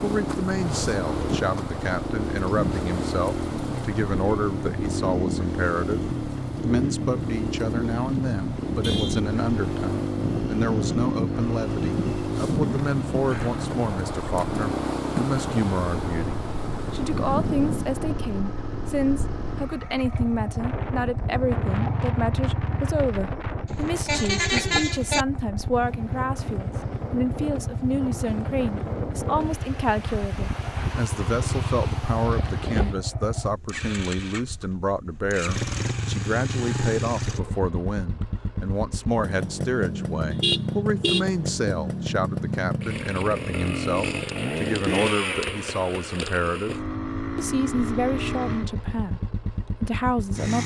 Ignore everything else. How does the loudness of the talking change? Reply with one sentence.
The volume of the talking stays about the same.